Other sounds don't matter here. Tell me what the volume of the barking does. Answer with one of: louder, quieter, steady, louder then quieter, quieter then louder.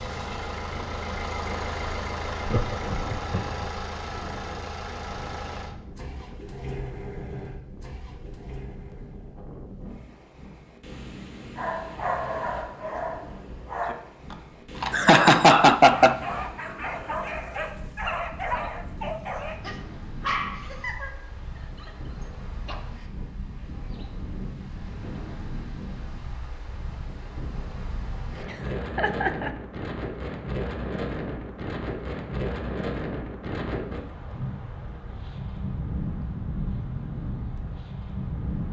steady.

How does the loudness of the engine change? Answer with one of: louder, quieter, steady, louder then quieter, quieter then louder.
quieter.